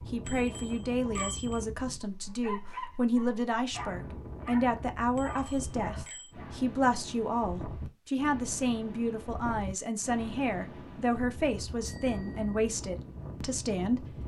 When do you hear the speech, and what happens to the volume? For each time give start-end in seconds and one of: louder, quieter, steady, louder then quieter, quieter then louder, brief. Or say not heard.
0.1-14.2 steady.